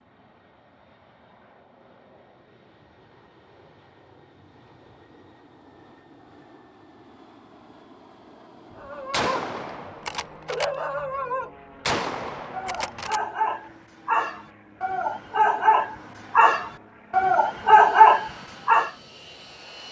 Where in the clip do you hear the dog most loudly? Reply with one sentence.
The loudest moment of the dog is at 18 seconds.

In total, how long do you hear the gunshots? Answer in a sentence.
You can hear the gunshots for 3 seconds altogether.